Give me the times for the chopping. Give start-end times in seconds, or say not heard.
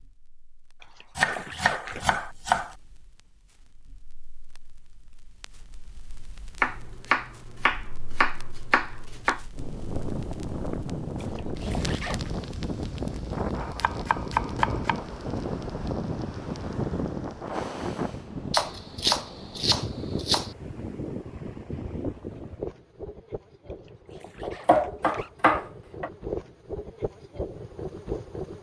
1.1-2.8, 6.6-9.4, 13.6-15.0, 18.5-20.5, 24.4-26.1.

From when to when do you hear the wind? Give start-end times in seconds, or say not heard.
9.5-28.5.